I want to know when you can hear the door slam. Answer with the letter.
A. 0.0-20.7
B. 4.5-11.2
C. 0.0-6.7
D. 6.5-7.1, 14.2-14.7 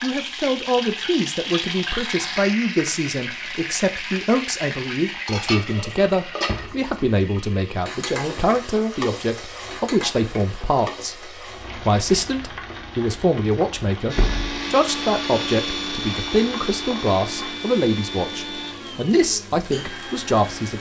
D.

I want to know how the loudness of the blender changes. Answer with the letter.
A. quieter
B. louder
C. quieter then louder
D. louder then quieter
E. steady
A.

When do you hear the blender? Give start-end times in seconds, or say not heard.
14.1-20.7.